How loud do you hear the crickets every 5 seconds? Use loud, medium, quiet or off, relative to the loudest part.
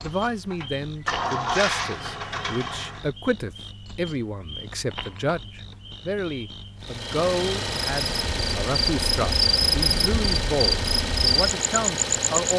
quiet, loud, loud.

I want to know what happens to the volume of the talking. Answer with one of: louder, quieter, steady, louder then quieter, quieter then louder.
steady.